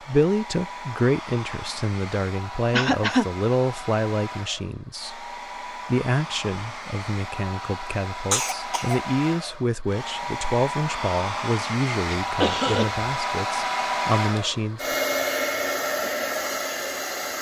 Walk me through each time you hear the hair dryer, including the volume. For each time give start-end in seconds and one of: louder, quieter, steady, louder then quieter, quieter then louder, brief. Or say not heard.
0.0-17.3 louder.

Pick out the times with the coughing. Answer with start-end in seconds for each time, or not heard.
2.7-3.2, 8.3-9.0, 12.2-13.1.